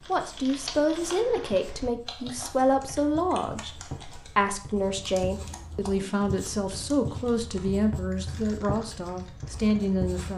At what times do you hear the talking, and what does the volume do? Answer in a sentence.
The talking can be heard from 0.1 to 10.3 s, at a steady volume.